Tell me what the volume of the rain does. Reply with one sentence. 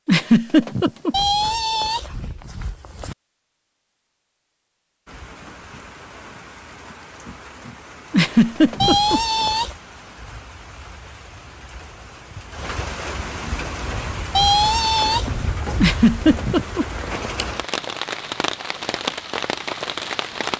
The loudness of the rain goes up.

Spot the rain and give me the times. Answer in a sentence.
You can hear the rain from 5.0 to 20.5 s.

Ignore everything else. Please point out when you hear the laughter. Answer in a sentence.
The laughter can be heard from 0.1 to 1.1 s, from 8.1 to 9.2 s and from 15.8 to 16.9 s.